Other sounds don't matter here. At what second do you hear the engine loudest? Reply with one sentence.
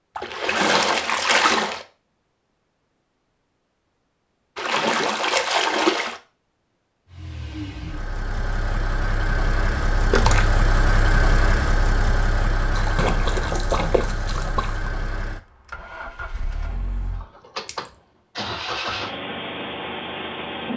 The loudest moment of the engine is at 11 seconds.